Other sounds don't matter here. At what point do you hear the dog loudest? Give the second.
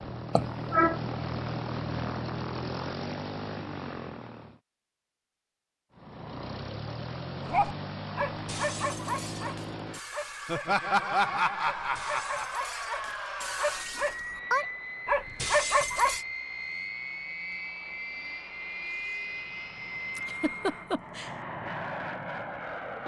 16 s.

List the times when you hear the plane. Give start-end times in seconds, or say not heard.
0.0-4.6, 5.9-23.0.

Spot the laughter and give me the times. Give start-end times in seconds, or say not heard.
0.3-0.9, 10.4-12.5, 20.1-21.4.